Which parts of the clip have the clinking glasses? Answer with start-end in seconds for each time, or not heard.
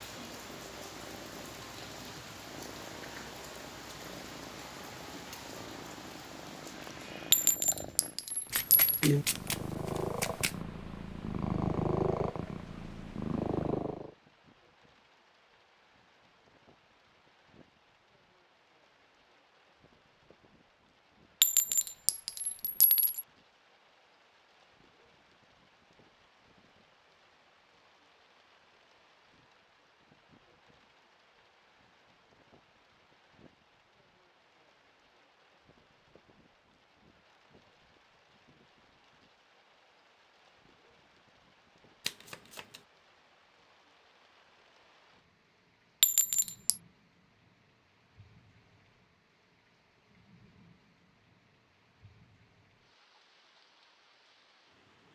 7.3-9.0, 21.4-23.2, 46.0-46.8.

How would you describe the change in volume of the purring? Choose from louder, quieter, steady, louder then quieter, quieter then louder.
louder.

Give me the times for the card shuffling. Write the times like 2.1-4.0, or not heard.
8.5-10.6, 42.0-42.8.